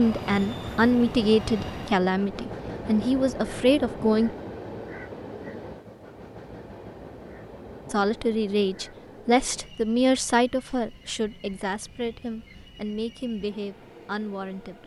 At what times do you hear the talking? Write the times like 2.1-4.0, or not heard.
0.0-4.3, 7.9-14.8.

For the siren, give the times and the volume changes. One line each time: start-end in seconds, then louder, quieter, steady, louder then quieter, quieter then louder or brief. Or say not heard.
not heard.